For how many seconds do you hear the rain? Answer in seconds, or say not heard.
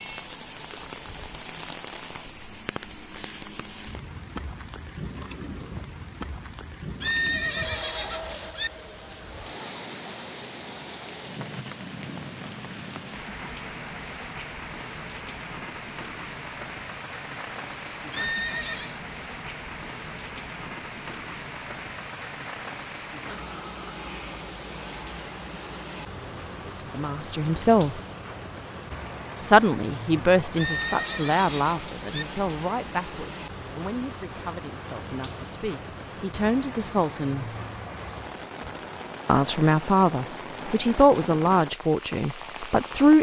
43 s.